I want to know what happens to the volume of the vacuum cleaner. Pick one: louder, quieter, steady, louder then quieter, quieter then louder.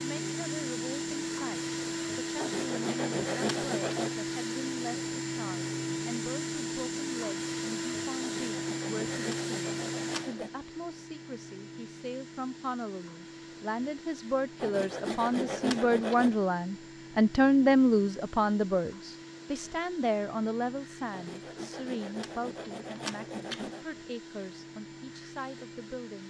quieter.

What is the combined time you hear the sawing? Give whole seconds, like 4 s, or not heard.
9 s.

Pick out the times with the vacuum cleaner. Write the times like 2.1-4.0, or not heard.
0.0-26.2.